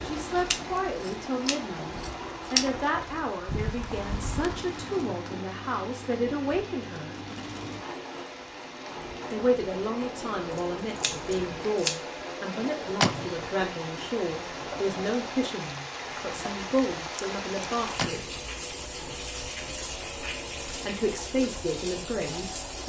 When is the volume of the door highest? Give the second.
13 s.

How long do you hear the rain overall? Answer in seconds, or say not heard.
23 s.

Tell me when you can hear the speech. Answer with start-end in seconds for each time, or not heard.
0.0-7.2, 9.3-18.4, 20.9-22.8.